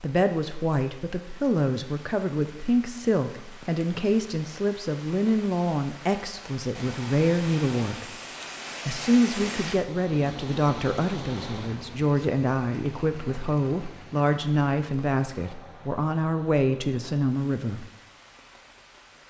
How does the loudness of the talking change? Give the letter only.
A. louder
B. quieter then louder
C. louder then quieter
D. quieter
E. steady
E.